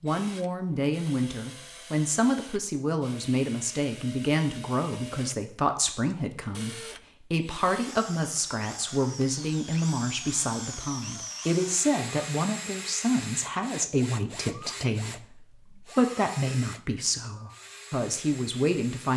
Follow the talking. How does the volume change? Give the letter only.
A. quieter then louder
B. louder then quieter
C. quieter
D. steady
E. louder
D.